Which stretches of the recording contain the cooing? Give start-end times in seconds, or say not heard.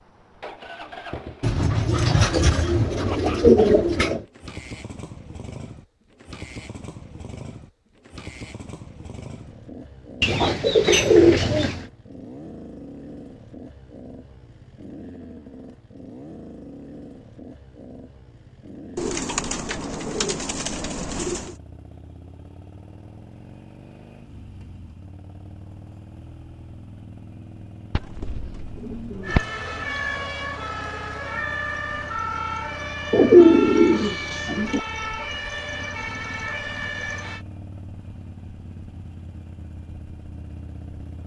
1.4-4.2, 10.2-11.8, 18.9-21.5, 27.9-29.4, 33.1-34.8.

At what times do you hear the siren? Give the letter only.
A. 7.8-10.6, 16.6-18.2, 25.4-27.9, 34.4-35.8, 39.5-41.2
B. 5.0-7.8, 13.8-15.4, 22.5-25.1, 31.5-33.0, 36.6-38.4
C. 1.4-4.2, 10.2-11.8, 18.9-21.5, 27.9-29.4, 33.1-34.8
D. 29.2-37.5
D.